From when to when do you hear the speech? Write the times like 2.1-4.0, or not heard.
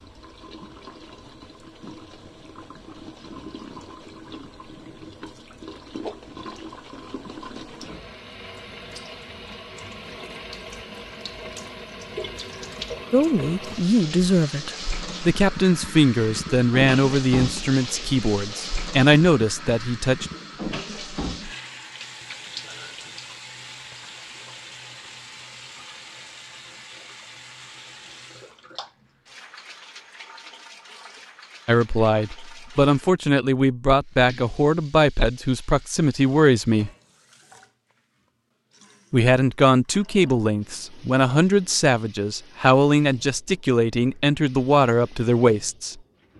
13.1-20.2, 31.6-36.9, 39.1-46.0.